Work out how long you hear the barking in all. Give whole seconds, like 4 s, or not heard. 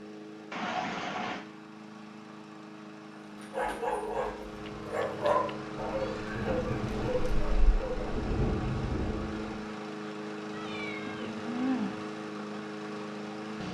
5 s.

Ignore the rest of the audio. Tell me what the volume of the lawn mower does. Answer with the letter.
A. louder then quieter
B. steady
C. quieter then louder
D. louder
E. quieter
D.